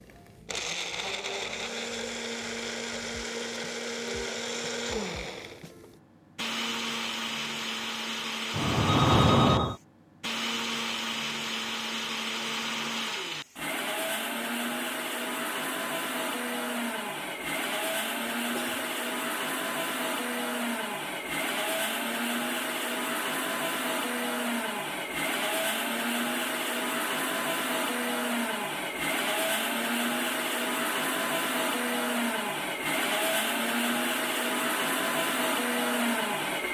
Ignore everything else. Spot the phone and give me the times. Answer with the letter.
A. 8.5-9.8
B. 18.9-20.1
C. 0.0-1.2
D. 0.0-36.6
A.